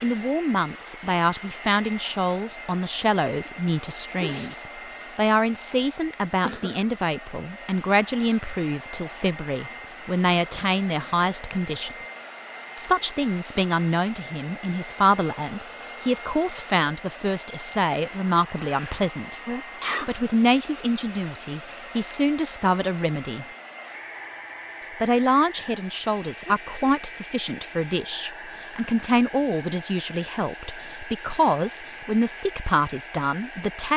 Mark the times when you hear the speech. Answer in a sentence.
You can hear the speech from 0.0 to 11.9 s, from 12.8 to 23.4 s and from 25.0 to 33.9 s.